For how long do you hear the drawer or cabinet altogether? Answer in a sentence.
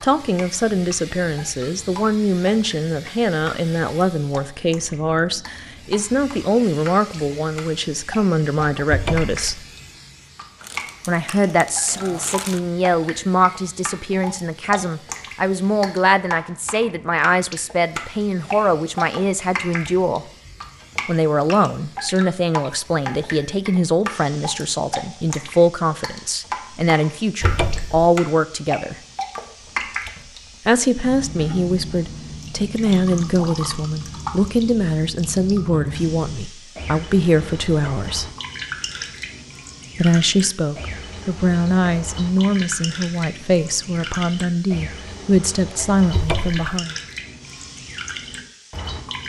The drawer or cabinet can be heard for 2 seconds in total.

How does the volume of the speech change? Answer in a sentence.
The volume of the speech stays about the same.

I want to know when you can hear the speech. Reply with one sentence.
You can hear the speech from 0.0 to 9.7 s, from 11.1 to 20.2 s, from 21.1 to 28.9 s, from 30.6 to 38.2 s and from 40.0 to 47.0 s.